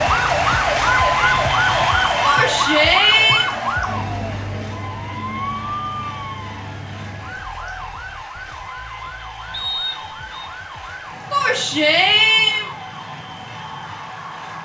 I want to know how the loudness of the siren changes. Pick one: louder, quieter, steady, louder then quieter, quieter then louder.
quieter.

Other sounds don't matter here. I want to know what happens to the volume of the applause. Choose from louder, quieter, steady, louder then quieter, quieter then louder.
quieter.